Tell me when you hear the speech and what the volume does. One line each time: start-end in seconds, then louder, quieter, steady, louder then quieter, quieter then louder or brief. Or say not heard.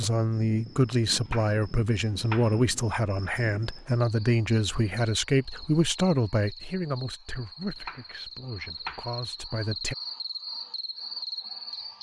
0.0-9.9 quieter.